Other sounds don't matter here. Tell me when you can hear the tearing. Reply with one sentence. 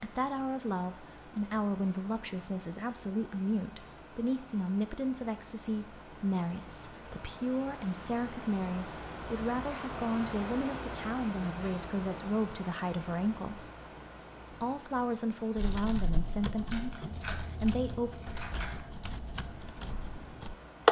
The tearing can be heard from 16.1 to 18.9 s.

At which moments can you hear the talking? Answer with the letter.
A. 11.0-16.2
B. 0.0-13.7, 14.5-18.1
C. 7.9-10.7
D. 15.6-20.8
B.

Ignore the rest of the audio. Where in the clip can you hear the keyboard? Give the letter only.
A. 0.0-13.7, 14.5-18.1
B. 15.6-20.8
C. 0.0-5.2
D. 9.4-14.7
B.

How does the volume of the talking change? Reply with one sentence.
The loudness of the talking stays about the same.